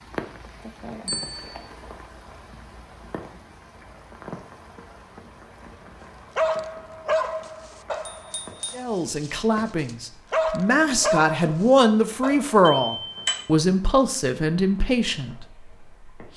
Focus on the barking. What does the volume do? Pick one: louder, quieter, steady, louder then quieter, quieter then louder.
quieter then louder.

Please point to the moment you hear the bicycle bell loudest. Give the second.
13 s.